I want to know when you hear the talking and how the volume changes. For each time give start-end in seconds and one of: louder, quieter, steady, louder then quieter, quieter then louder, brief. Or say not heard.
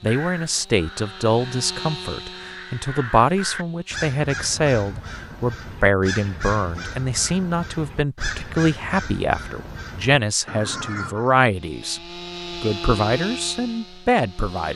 0.0-12.0 steady
12.6-14.7 brief.